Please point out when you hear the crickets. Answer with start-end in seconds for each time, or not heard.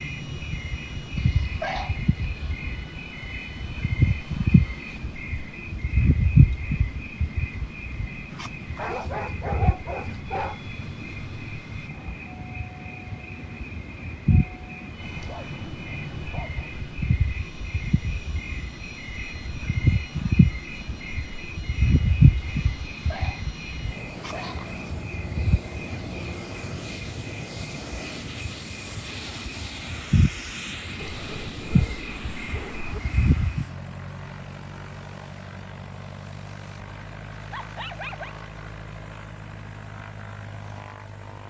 0.0-33.6.